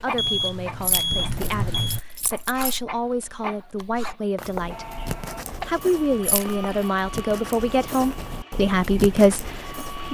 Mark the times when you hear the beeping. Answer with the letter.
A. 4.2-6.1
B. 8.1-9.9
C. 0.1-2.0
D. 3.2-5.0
C.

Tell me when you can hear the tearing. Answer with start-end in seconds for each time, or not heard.
not heard.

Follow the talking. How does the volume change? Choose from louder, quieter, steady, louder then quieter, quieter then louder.
louder.